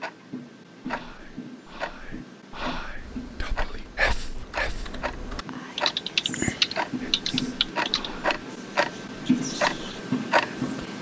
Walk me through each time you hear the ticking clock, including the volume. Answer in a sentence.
The ticking clock can be heard from 0.0 to 10.9 s, getting louder.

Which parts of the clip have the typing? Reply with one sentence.
The typing can be heard from 3.0 to 8.1 s.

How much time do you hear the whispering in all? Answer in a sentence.
You can hear the whispering for 10 seconds altogether.